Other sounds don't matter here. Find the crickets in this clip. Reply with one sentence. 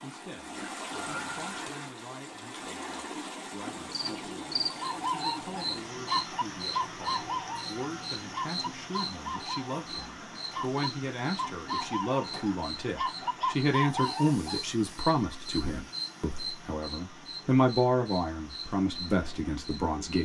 You can hear the crickets from 3.7 to 20.1 s.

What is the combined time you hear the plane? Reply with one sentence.
You can't hear the plane here.